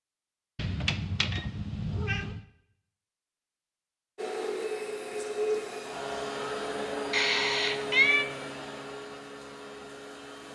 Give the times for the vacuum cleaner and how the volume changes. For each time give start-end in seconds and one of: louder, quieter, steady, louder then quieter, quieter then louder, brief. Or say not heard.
4.2-10.5 quieter.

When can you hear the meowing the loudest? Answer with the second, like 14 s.
8 s.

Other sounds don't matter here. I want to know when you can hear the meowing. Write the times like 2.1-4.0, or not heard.
0.6-2.4, 7.1-8.2.